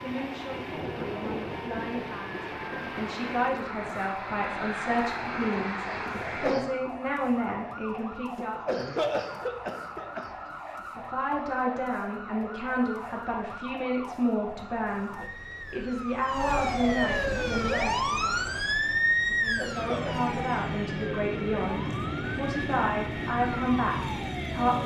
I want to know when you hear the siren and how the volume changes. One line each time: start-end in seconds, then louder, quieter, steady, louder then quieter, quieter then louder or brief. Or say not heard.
0.0-24.8 louder then quieter.